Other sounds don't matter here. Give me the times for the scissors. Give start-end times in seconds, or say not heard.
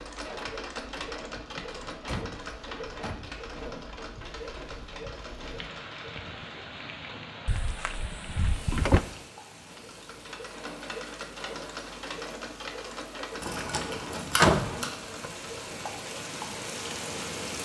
13.4-14.9.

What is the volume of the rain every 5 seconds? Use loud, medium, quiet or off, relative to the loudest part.
quiet, medium, medium, loud.